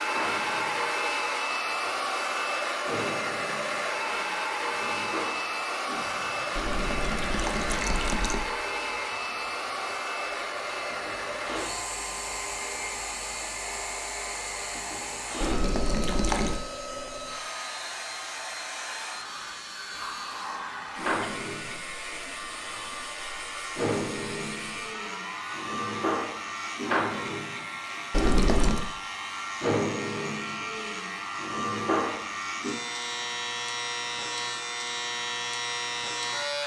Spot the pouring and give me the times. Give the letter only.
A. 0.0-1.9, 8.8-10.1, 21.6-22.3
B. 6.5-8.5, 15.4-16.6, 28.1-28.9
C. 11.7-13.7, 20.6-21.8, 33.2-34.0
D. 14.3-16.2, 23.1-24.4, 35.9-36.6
B.